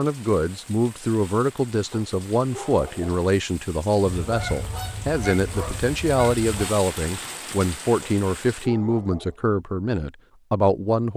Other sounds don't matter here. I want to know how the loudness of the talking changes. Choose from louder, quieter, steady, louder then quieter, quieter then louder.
steady.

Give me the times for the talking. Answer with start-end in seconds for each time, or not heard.
0.0-11.1.